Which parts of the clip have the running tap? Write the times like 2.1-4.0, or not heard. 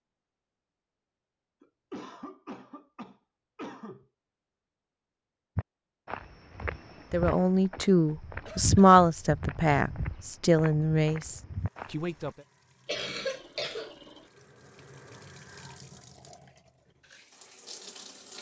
11.5-18.3.